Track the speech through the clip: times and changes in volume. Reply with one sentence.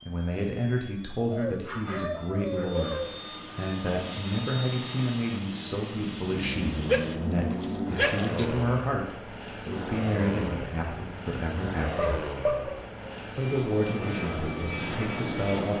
You can hear the speech from 0.0 to 12.2 s, at a steady volume; and briefly from 13.3 to 15.7 s.